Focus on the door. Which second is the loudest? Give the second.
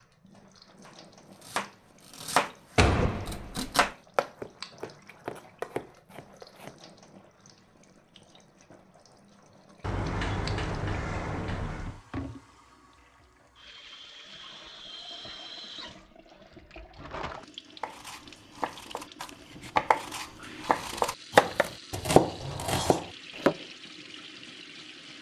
3 s.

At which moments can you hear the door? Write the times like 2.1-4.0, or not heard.
2.8-3.9, 9.8-12.0, 22.4-23.1.